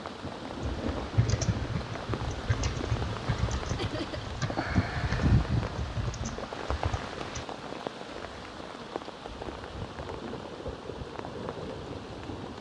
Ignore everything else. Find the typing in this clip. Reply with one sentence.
You can hear the typing from 0.5 to 7.5 s.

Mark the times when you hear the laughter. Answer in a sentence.
You can hear the laughter from 3.8 to 4.3 s.